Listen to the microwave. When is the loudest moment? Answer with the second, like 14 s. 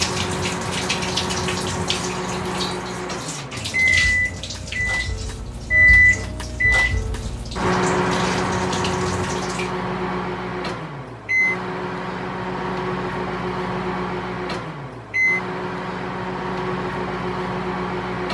6 s.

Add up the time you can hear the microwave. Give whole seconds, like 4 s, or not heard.
18 s.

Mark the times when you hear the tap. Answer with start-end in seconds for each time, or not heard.
0.0-9.7.